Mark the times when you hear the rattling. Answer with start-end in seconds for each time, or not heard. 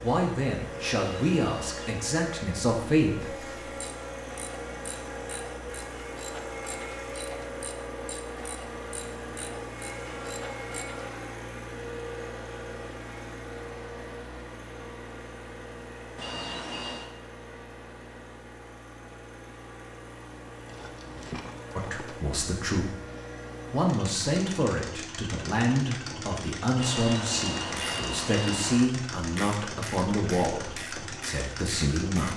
20.6-22.1.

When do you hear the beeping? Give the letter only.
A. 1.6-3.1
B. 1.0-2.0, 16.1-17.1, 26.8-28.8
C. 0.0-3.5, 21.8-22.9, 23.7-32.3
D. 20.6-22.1
B.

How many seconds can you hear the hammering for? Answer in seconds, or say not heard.
not heard.